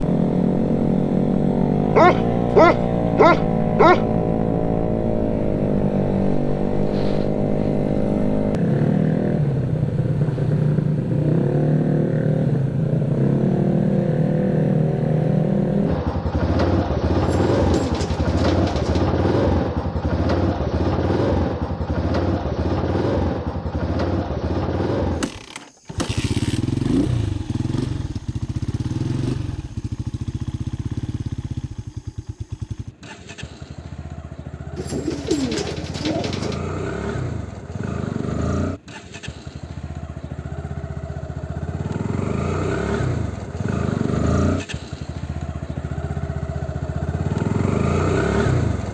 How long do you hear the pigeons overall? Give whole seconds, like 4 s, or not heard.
4 s.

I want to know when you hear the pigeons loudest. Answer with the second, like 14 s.
35 s.